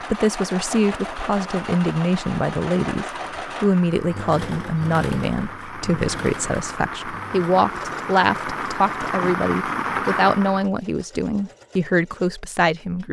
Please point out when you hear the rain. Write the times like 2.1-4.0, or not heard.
0.0-10.7.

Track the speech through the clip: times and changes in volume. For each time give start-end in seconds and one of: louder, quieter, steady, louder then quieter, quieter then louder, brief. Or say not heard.
0.1-13.0 steady.